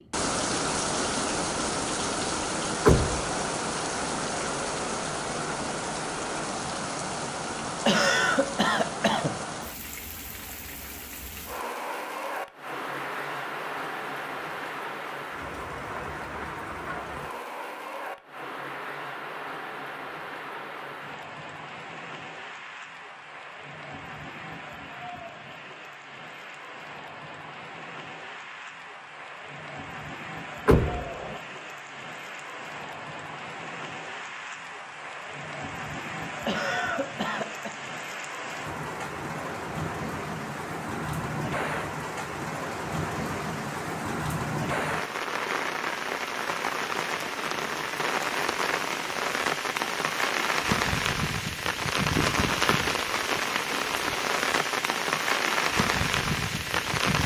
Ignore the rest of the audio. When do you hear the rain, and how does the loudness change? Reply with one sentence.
The rain can be heard from 0.1 to 57.2 s, getting quieter then louder.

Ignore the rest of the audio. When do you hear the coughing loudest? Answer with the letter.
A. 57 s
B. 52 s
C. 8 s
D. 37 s
C.